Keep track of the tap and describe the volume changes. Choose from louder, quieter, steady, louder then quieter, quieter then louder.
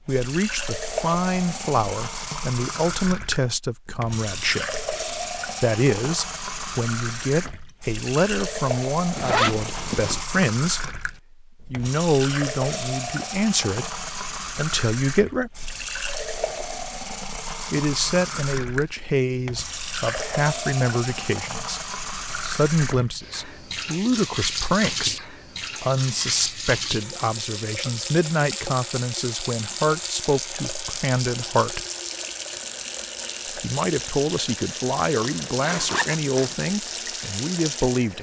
steady.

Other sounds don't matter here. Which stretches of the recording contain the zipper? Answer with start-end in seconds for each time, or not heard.
9.2-10.2, 35.2-36.5.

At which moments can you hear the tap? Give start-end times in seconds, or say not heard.
0.0-38.1.